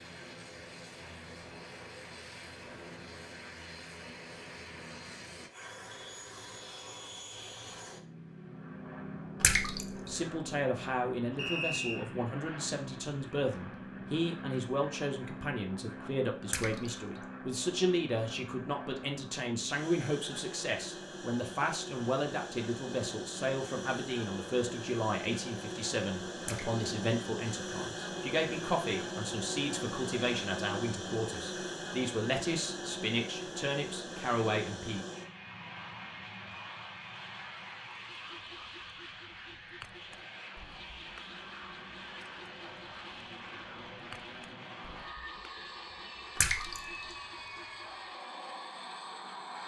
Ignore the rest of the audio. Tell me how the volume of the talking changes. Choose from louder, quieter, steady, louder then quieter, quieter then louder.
steady.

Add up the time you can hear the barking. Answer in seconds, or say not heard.
not heard.